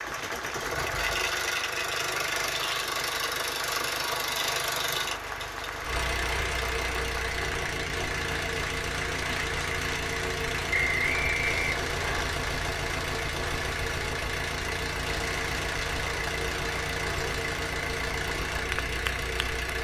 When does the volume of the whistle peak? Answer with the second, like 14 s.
11 s.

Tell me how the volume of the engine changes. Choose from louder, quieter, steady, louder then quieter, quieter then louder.
steady.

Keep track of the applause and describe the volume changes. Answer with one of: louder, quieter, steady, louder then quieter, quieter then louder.
steady.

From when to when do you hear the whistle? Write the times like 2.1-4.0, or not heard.
10.7-12.2.